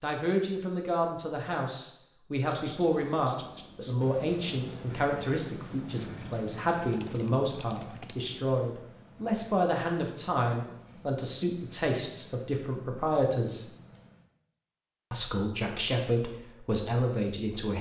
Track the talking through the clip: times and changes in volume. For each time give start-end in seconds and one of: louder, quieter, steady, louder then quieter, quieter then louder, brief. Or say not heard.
0.0-13.7 steady
15.1-17.7 brief.